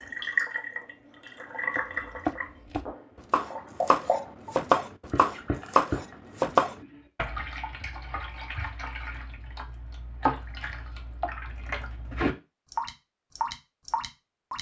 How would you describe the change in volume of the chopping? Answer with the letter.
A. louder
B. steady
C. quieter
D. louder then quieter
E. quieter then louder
A.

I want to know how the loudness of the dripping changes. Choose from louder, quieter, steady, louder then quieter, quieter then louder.
quieter then louder.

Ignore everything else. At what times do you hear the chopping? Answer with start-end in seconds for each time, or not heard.
1.8-7.3.